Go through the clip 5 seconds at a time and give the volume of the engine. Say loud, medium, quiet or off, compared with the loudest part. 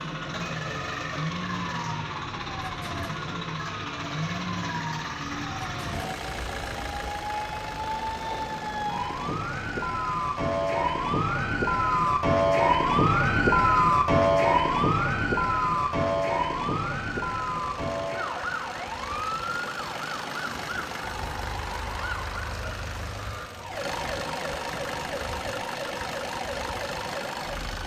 loud, loud, medium, medium, loud, loud.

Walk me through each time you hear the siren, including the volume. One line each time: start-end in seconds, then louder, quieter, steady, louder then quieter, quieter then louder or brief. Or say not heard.
0.0-27.8 louder then quieter.